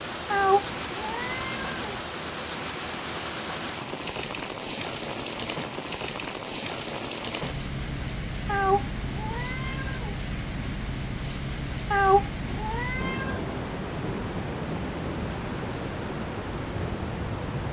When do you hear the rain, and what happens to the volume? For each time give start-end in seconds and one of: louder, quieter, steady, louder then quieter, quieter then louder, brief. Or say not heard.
0.0-17.6 steady.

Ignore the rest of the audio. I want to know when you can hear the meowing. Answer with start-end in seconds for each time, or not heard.
0.3-2.0, 8.4-10.2, 11.9-13.4.